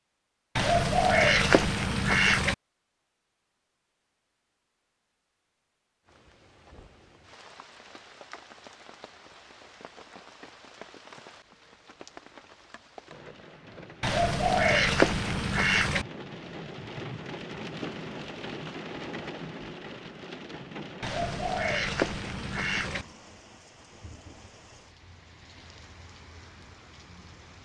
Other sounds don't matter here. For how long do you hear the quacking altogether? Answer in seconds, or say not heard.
6 s.